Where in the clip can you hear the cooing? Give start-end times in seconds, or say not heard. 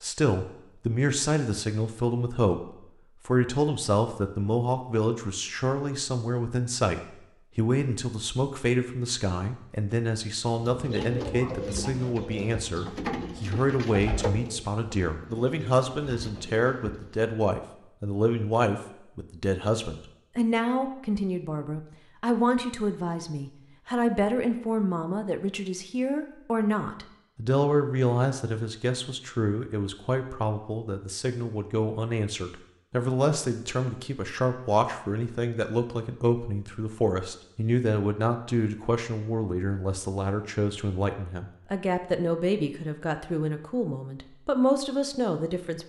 10.6-17.2.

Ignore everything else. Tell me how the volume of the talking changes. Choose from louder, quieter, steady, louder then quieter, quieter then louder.
steady.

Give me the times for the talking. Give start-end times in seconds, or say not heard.
0.0-45.8.